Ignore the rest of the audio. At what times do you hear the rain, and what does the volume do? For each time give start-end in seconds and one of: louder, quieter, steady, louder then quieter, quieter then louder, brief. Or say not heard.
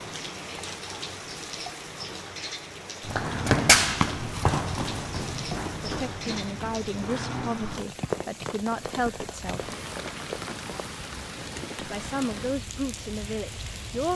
0.0-14.1 steady.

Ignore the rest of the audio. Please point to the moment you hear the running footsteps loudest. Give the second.
4 s.